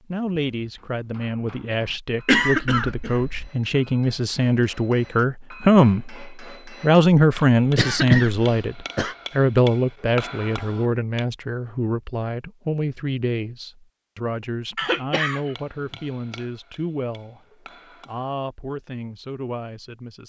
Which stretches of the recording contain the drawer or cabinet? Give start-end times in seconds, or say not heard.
not heard.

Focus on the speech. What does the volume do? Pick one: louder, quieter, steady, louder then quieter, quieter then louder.
louder then quieter.